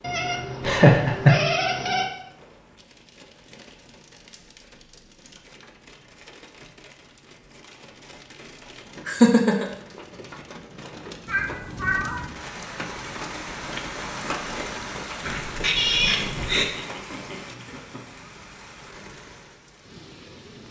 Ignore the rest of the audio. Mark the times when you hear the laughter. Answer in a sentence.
You can hear the laughter from 0.6 to 1.4 s, from 9.1 to 9.7 s and from 15.8 to 18.2 s.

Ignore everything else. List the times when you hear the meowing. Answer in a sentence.
The meowing can be heard from 0.0 to 2.0 s, from 11.2 to 12.2 s and from 15.2 to 16.6 s.